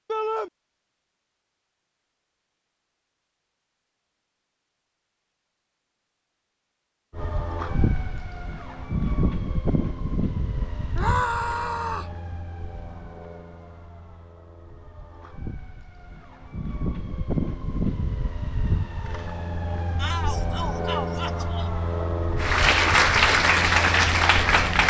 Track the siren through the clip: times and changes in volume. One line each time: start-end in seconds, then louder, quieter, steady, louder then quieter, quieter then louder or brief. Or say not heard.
7.1-24.8 quieter then louder.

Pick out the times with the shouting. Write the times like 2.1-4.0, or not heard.
0.1-0.5, 10.9-12.2, 19.9-21.7.